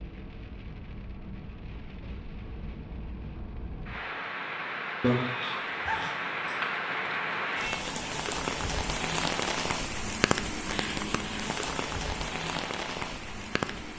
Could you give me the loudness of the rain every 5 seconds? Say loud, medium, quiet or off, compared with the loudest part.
medium, loud, loud.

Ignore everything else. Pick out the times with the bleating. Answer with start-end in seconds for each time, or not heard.
5.0-6.7.